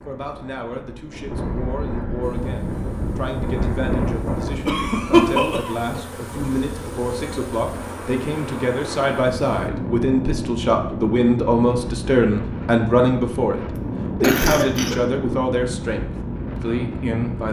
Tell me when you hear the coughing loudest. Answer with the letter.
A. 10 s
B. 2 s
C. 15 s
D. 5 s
D.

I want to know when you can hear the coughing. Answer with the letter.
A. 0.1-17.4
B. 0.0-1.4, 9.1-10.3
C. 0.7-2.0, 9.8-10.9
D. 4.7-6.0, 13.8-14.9
D.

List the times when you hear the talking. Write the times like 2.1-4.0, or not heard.
0.1-17.4.